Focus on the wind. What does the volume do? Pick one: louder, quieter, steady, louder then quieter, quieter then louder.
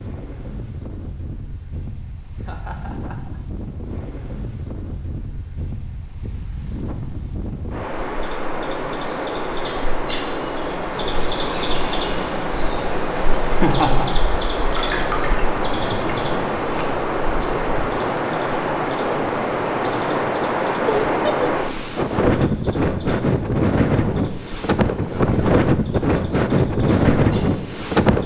louder.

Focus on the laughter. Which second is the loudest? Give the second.
14 s.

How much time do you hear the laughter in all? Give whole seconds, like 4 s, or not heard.
2 s.